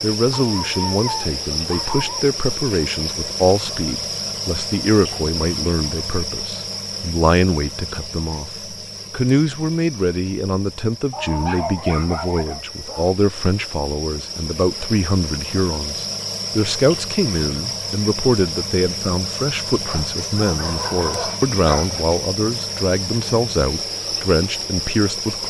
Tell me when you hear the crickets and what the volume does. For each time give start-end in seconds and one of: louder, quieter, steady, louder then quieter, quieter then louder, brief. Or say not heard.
0.0-25.4 quieter then louder.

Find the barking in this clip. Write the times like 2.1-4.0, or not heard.
0.3-2.2, 11.1-13.1, 19.9-22.1.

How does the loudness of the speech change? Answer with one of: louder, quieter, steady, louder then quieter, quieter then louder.
steady.